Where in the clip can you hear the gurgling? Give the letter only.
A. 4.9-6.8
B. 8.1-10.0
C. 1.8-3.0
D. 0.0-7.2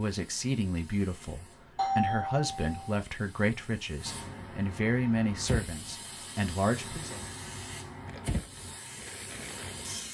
B.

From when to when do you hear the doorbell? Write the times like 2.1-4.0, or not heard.
1.8-3.0.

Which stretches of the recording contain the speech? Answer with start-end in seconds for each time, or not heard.
0.0-7.2.